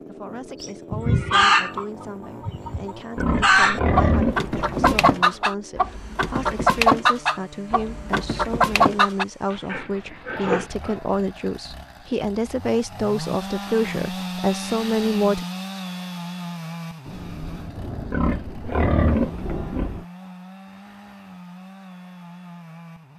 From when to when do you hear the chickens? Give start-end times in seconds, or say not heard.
0.6-9.2.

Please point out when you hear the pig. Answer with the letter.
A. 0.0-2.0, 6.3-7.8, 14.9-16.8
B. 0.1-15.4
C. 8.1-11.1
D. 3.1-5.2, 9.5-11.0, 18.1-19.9
D.